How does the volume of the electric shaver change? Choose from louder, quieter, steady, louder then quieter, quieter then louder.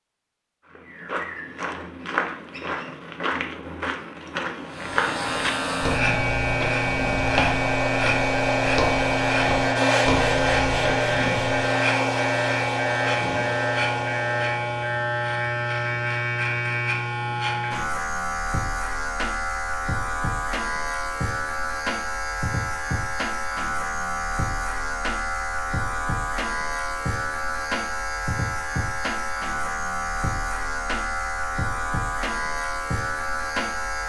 steady.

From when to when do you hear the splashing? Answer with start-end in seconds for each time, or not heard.
not heard.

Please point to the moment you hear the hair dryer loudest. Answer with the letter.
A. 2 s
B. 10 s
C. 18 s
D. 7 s
B.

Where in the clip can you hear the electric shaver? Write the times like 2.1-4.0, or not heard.
4.7-34.0.